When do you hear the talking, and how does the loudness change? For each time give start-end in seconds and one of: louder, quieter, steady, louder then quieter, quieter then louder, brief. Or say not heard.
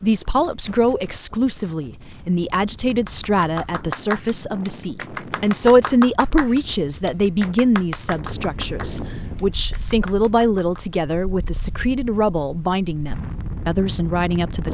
0.0-14.6 steady.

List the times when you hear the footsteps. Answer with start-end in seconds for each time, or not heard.
not heard.